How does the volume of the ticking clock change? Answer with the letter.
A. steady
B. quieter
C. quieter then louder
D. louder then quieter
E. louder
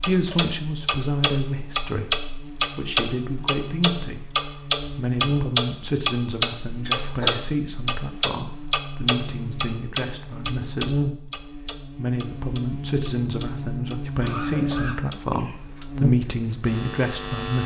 B.